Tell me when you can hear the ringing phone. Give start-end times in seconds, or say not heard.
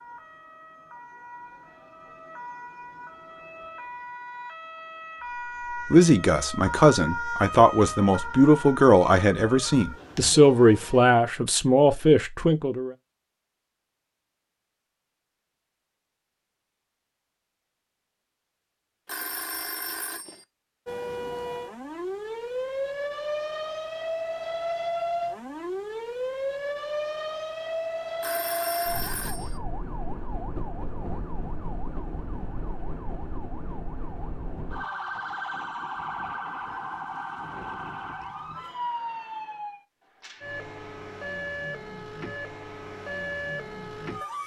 19.1-20.4, 28.2-29.6.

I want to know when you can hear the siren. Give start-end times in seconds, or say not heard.
0.0-11.0, 20.9-44.4.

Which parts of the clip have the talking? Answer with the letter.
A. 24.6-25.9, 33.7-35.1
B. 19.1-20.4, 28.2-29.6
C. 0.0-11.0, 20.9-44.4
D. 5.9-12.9
D.